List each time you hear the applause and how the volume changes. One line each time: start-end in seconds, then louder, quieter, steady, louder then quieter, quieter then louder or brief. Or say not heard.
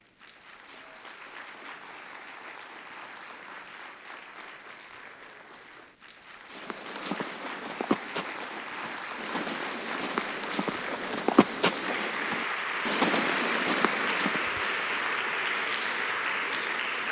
0.0-17.0 louder.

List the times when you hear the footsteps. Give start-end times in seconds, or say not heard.
6.5-14.5.